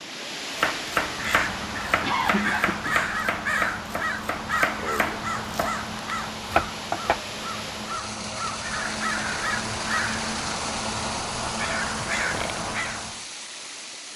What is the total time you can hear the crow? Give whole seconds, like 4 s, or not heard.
12 s.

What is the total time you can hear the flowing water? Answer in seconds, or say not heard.
14 s.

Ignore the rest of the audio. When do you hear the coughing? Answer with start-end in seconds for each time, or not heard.
2.0-3.0.